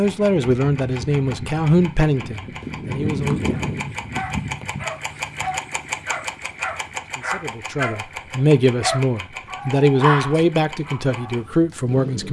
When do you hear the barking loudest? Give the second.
10 s.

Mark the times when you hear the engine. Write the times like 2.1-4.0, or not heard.
0.0-12.2.